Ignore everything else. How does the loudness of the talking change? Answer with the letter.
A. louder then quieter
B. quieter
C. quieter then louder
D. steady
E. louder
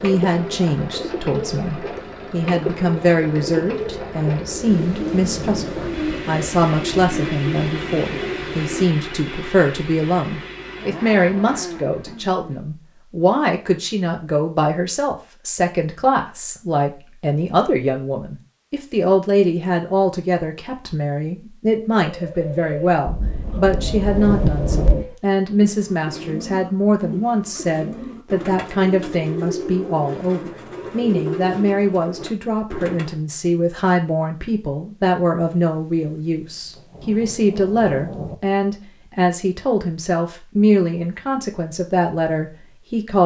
D.